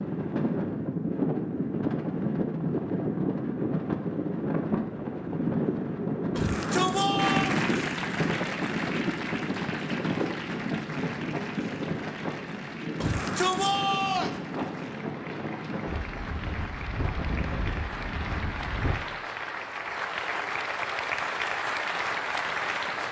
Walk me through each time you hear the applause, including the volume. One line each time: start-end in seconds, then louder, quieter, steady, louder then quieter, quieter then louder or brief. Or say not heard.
7.2-23.0 quieter then louder.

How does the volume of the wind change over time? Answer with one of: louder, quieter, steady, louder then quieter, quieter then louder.
quieter.